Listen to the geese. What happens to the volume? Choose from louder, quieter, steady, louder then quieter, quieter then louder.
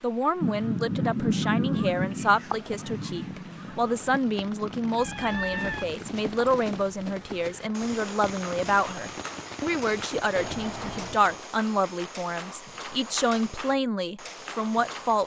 quieter.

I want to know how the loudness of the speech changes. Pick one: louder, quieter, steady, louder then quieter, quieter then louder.
steady.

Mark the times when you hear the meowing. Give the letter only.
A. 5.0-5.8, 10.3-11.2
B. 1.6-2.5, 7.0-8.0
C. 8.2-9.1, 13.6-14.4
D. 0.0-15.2
A.